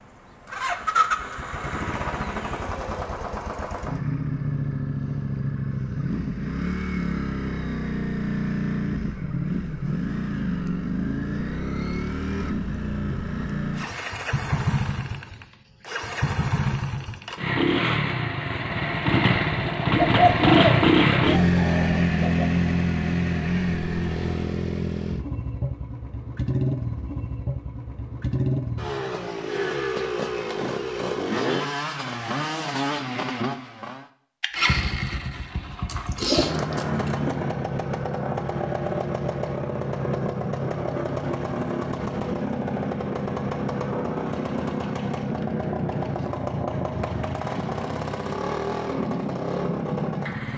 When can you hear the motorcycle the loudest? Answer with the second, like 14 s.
21 s.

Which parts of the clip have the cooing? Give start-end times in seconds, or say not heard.
19.9-22.4, 35.9-37.4.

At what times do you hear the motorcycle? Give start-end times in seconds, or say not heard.
0.0-50.5.